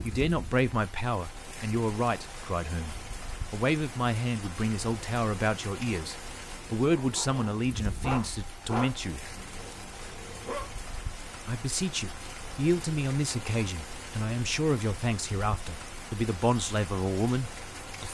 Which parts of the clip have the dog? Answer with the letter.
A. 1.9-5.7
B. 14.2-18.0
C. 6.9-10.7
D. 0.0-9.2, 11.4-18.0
C.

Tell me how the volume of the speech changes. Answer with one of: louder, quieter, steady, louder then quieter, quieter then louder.
steady.